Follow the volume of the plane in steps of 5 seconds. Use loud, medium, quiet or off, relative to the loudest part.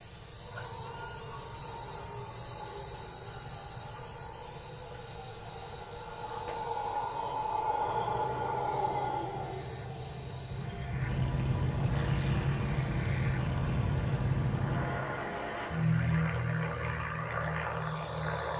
quiet, quiet, loud, loud.